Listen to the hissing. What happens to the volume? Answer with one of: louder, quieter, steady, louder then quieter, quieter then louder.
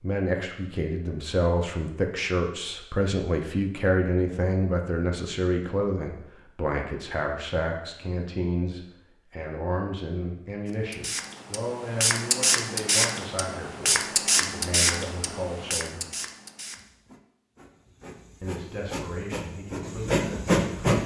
quieter then louder.